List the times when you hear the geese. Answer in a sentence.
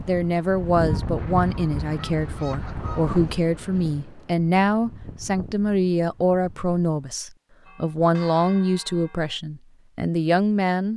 The geese can be heard from 0.8 to 3.4 s.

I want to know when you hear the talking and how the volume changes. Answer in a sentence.
You can hear the talking from 0.1 to 10.9 s, at a steady volume.